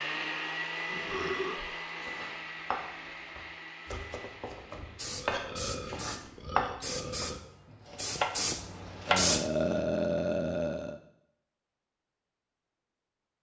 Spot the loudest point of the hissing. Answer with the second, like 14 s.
9 s.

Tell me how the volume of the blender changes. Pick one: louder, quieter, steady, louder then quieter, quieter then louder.
quieter.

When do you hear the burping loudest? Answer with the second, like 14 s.
10 s.